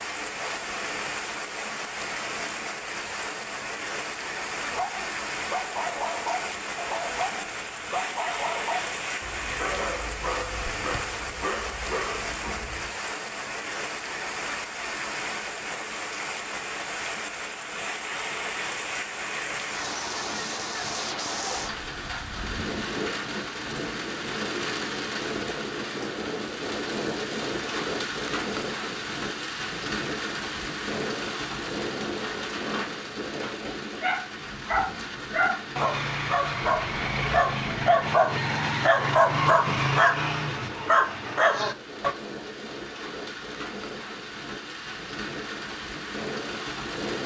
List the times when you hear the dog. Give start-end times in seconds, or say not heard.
4.7-12.9, 34.0-42.1.